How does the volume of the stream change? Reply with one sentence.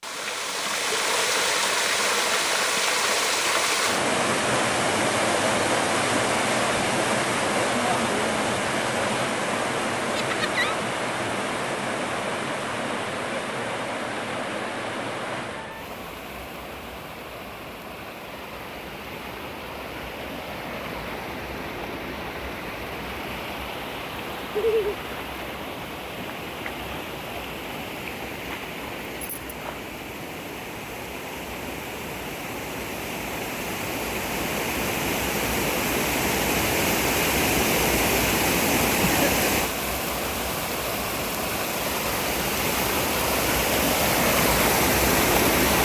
The loudness of the stream goes down, then up.